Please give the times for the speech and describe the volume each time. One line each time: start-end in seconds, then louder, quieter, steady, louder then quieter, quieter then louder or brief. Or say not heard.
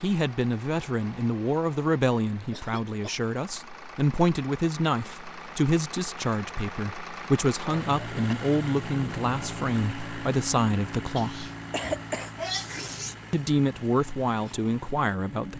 0.0-11.5 steady
13.3-15.5 brief.